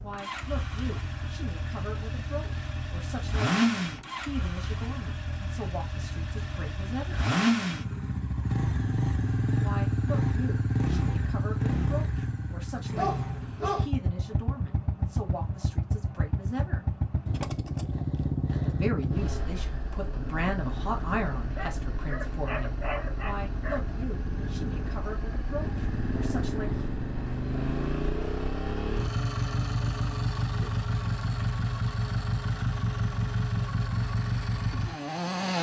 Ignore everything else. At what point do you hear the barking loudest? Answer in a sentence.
The loudest moment of the barking is at 13 seconds.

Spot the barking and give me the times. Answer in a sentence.
The barking can be heard from 12.9 to 13.8 s and from 21.4 to 23.9 s.